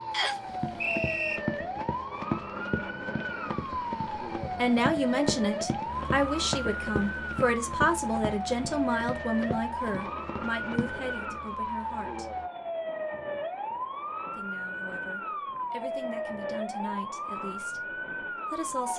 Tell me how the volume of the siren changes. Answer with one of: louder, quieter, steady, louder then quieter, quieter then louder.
steady.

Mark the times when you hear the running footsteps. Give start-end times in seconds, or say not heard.
0.5-11.1.